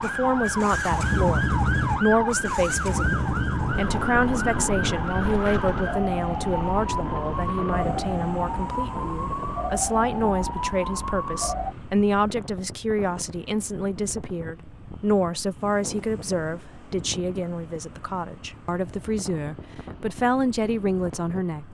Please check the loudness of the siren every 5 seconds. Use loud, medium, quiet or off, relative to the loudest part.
loud, loud, loud, off, off.